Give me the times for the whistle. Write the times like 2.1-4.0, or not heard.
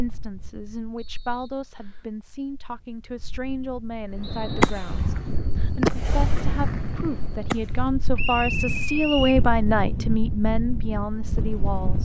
0.9-2.1, 4.2-5.0, 8.2-9.4.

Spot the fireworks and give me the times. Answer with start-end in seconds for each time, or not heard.
4.2-7.8.